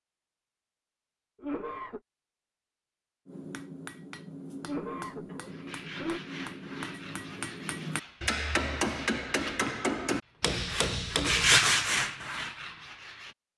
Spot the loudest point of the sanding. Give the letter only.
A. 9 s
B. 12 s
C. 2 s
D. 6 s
B.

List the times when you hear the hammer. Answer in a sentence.
You can hear the hammer from 3.2 to 11.6 s.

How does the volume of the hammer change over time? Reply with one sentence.
The loudness of the hammer goes up.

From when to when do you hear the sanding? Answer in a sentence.
You can hear the sanding from 5.5 to 13.3 s.